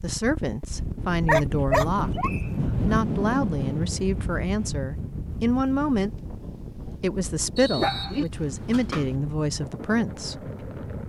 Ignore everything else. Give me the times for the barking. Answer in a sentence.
You can hear the barking from 1.2 to 2.9 s and from 7.7 to 9.2 s.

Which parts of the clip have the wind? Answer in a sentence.
The wind can be heard from 0.0 to 11.0 s.